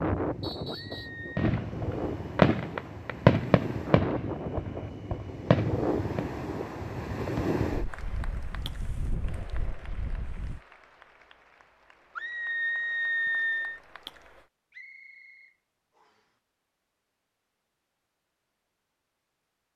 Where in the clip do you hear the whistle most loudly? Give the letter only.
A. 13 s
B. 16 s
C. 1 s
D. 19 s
C.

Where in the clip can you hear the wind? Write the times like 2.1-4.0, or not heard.
0.0-10.6.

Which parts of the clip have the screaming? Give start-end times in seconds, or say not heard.
0.7-1.4, 12.2-13.8.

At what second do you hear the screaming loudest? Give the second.
13 s.